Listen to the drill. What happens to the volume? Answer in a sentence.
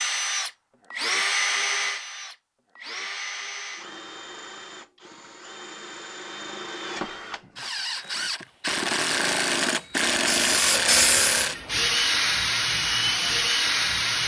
The volume of the drill goes down, then up.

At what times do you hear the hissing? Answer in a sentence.
The hissing can be heard from 10.2 to 12.2 s.